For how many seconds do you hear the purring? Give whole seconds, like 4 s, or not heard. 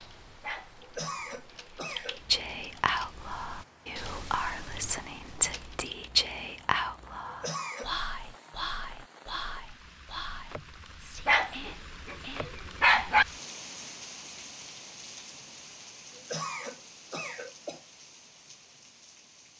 not heard.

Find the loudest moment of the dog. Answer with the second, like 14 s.
13 s.